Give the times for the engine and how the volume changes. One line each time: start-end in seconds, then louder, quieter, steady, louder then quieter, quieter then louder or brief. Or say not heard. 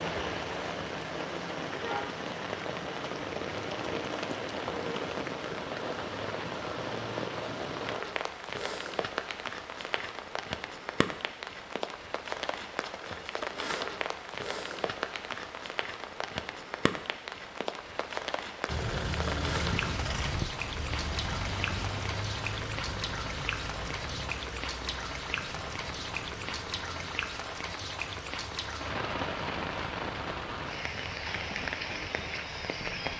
18.6-33.0 quieter.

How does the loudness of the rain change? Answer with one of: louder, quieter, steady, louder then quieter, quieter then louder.
steady.